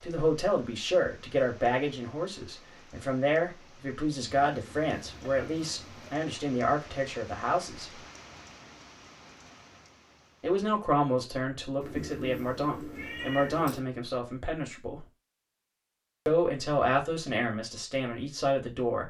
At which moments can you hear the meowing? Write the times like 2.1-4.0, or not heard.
4.5-6.2, 11.8-13.8.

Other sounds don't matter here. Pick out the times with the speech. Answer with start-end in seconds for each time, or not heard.
0.0-8.0, 10.4-15.1, 16.2-19.0.